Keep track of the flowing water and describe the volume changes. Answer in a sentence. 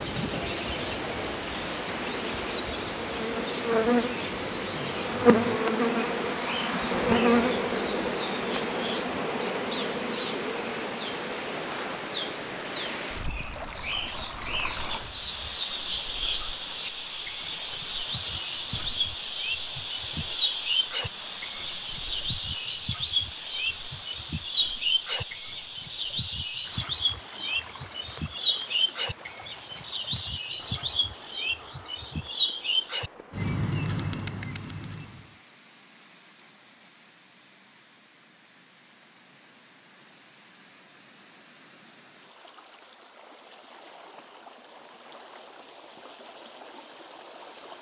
The loudness of the flowing water goes down.